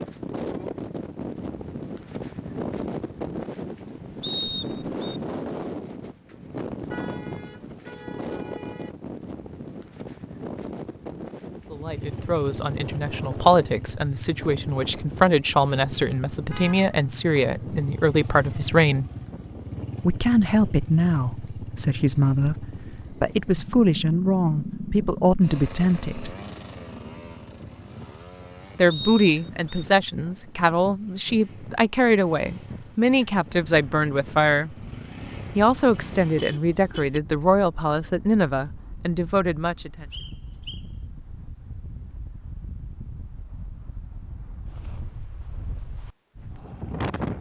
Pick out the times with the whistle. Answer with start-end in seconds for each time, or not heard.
4.2-5.2, 28.9-29.9, 40.1-40.9.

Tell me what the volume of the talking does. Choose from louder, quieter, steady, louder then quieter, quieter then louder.
steady.